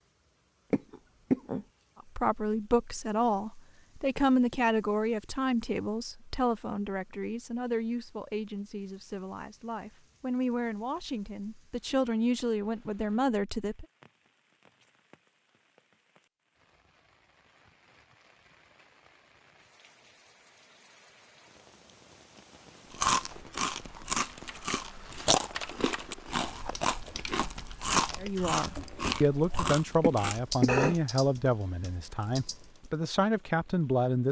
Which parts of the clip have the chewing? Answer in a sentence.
You can hear the chewing from 22.9 to 30.9 s.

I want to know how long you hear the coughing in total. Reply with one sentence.
The coughing can be heard for 2 seconds in total.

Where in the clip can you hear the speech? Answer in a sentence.
You can hear the speech from 2.0 to 13.8 s and from 28.2 to 34.2 s.